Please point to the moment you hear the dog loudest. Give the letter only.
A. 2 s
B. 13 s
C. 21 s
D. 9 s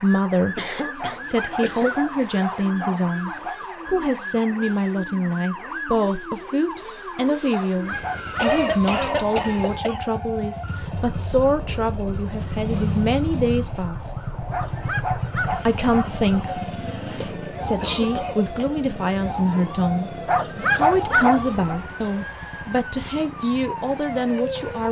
C.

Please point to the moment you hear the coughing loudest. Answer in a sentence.
The volume of the coughing peaks at 9 seconds.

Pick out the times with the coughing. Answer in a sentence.
The coughing can be heard from 0.6 to 1.9 s, from 8.3 to 10.1 s and from 17.2 to 18.8 s.